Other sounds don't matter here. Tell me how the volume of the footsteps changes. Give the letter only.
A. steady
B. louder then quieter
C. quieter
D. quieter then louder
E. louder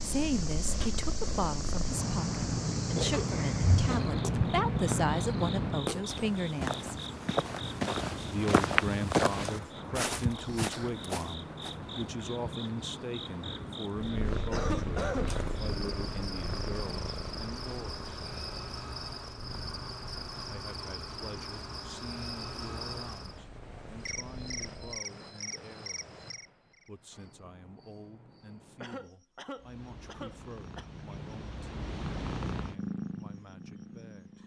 B.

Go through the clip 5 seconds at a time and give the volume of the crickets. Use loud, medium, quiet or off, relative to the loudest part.
loud, loud, loud, loud, loud, medium, quiet.